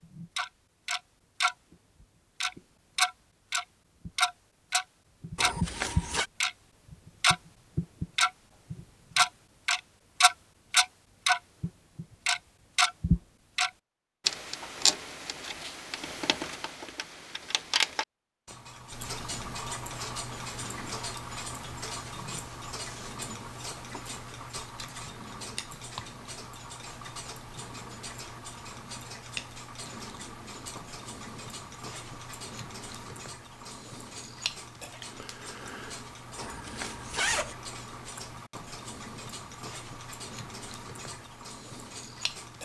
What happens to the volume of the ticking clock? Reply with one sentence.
The loudness of the ticking clock goes down.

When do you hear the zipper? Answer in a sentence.
You can hear the zipper from 5.3 to 6.2 s and from 36.4 to 37.5 s.